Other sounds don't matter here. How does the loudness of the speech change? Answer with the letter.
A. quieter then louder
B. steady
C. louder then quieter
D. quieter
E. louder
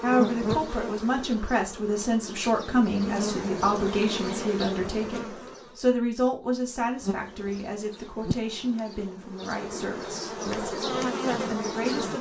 D.